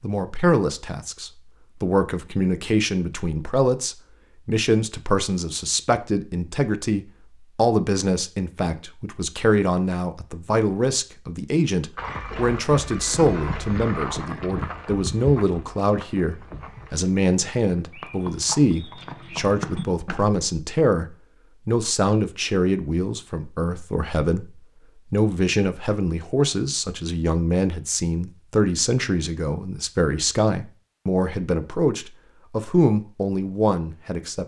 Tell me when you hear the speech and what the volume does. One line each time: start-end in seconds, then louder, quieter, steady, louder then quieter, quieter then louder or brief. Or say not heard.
0.0-34.4 steady.